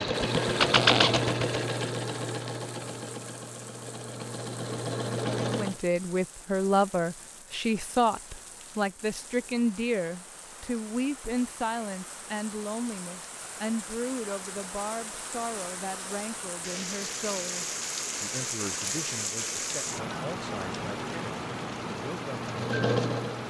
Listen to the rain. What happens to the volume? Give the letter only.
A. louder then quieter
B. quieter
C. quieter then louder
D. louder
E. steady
D.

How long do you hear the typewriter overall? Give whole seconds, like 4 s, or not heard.
not heard.